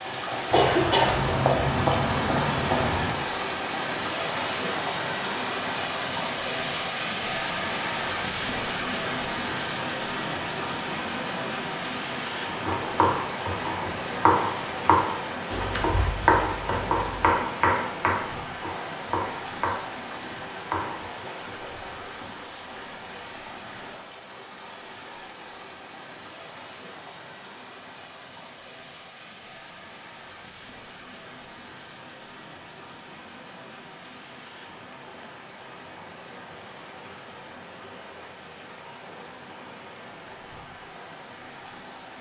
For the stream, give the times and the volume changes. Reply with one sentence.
You can hear the stream from 0.0 to 42.1 s, getting quieter.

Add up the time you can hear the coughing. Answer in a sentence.
You can hear the coughing for 3 seconds altogether.